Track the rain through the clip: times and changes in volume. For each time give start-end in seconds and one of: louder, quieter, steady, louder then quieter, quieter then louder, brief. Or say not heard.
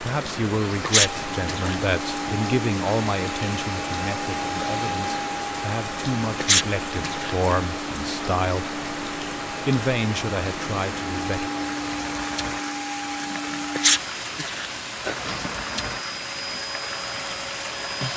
0.0-18.1 steady.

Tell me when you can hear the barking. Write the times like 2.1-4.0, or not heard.
not heard.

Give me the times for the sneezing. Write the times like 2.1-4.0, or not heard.
0.8-1.8, 6.4-7.3, 13.8-14.7.